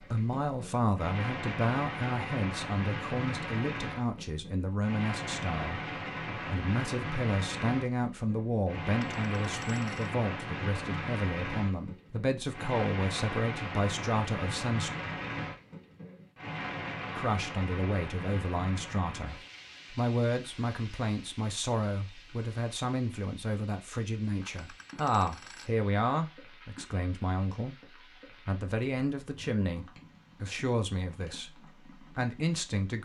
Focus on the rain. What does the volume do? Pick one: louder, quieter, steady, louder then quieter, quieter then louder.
quieter.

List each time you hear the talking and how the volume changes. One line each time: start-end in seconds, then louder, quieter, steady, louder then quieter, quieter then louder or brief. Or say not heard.
0.0-14.9 steady
17.1-27.8 steady
28.4-33.0 quieter then louder.